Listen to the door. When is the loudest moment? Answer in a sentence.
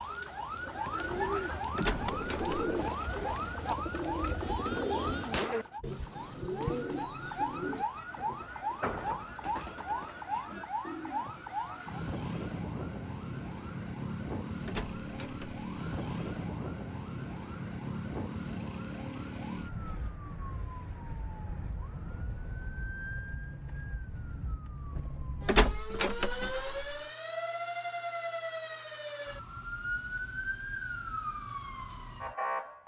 The loudest moment of the door is at 27 seconds.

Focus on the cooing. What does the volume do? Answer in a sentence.
The loudness of the cooing goes down.